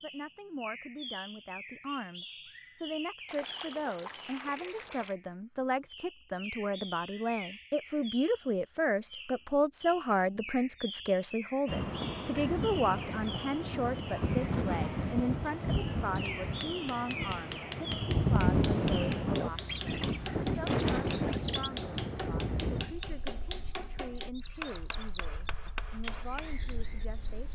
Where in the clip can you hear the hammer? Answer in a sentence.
The hammer can be heard from 16.1 to 26.8 s.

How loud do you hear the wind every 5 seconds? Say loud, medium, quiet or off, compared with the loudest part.
off, off, loud, loud, loud, quiet.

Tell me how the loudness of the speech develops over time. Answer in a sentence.
The volume of the speech goes up, then down.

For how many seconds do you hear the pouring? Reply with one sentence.
The pouring can be heard for 3 seconds in total.